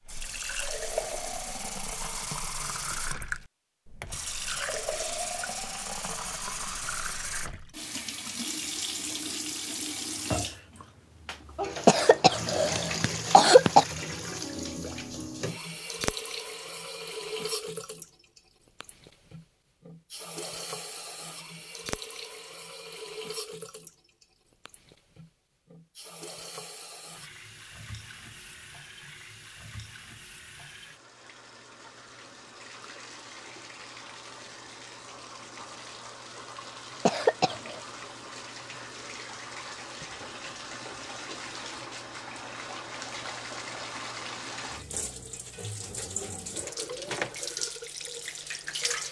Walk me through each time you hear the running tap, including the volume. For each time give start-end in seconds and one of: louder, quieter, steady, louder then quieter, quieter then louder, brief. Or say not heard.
0.1-49.0 quieter then louder.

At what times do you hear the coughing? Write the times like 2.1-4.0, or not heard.
11.8-13.8, 37.0-37.8.